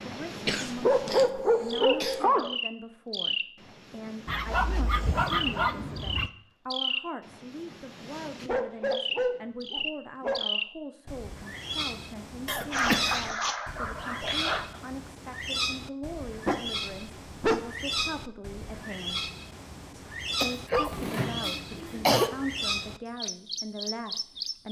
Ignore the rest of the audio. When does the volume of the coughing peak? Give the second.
22 s.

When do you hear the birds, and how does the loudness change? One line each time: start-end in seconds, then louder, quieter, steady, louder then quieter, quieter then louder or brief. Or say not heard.
0.0-24.6 steady.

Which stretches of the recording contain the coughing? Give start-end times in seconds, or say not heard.
0.5-2.3, 12.4-13.3, 20.4-22.3.